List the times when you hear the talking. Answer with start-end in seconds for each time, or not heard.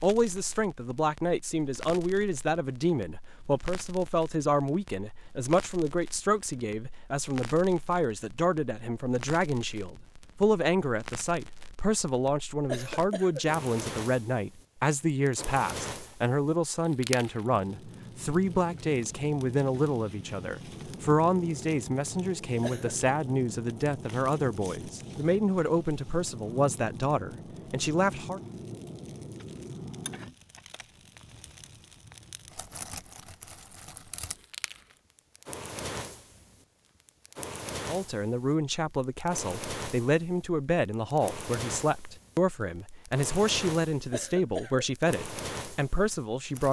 0.0-28.4, 37.9-46.6.